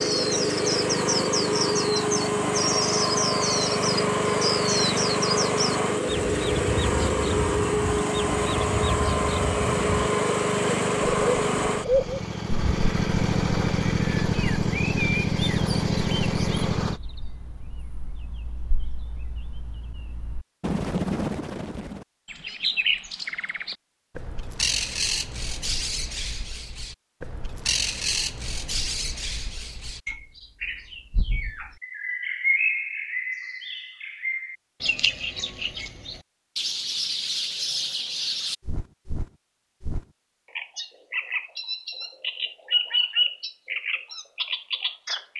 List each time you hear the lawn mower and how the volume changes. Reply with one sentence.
You can hear the lawn mower from 0.0 to 17.0 s, at a steady volume.